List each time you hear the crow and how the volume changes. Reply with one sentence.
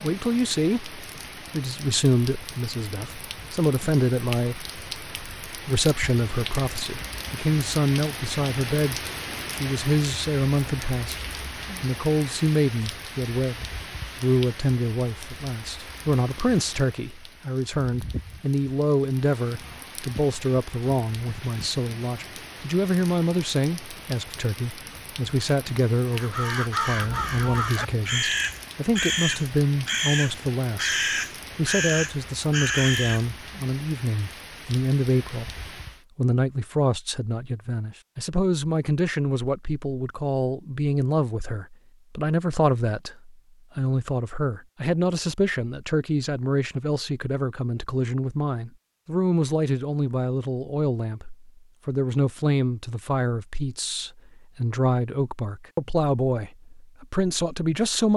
You can hear the crow from 26.1 to 33.2 s, at a steady volume.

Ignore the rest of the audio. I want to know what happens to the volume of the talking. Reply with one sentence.
The loudness of the talking stays about the same.